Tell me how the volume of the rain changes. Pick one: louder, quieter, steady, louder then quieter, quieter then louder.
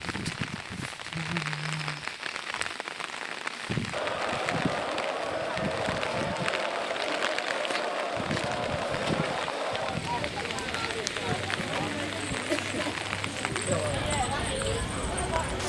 steady.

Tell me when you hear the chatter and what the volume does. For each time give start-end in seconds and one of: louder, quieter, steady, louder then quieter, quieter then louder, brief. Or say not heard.
3.9-15.6 steady.